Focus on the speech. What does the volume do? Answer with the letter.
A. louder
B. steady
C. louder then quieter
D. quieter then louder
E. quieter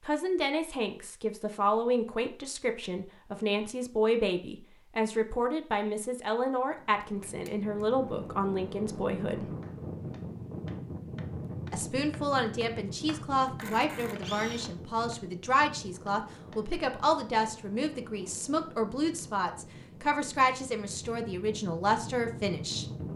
B.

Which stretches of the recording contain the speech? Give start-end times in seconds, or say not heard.
0.0-9.4, 11.7-22.9.